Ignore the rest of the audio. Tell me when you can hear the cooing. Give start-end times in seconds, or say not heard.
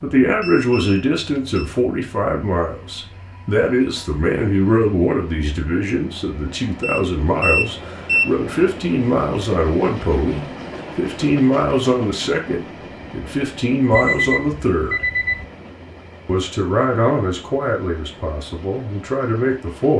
not heard.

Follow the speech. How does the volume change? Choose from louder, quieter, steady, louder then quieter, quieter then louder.
steady.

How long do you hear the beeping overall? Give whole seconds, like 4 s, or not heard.
4 s.